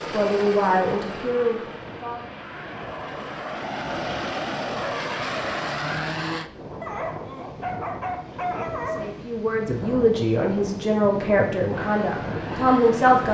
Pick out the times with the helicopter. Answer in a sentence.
The helicopter can be heard from 0.0 to 6.5 s and from 11.7 to 13.3 s.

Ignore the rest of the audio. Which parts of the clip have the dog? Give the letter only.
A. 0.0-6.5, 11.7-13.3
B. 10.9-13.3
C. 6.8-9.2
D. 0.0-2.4
C.